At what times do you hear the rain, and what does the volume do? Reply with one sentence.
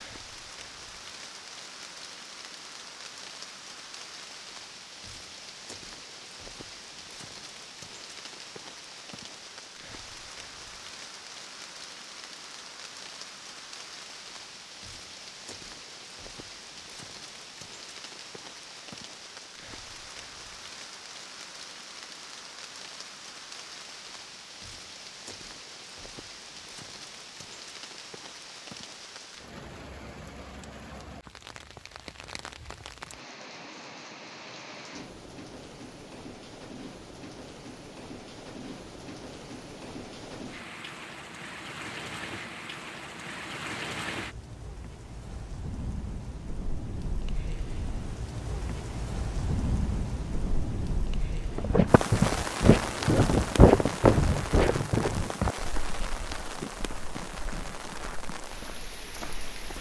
The rain can be heard from 0.0 to 59.7 s, getting louder.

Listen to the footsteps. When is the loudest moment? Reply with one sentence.
The loudest moment of the footsteps is at 54 seconds.